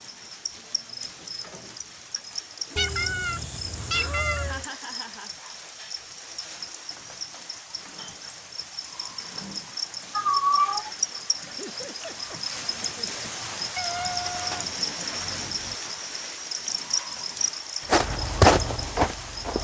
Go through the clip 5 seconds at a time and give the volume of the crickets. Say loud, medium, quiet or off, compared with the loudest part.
medium, medium, loud, loud.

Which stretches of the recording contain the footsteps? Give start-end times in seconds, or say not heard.
17.9-19.5.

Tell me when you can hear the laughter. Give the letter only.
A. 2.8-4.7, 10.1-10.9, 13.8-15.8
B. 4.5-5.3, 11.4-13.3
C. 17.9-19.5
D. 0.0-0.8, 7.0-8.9
B.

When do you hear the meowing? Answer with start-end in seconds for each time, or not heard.
2.8-4.7, 10.1-10.9, 13.8-15.8.